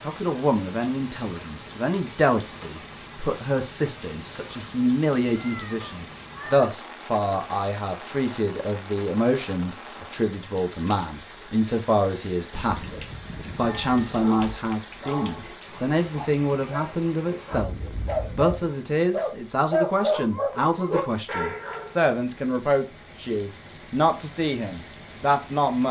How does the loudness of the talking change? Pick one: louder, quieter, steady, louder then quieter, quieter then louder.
steady.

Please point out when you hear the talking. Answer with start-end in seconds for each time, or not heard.
0.0-17.8, 18.4-25.8.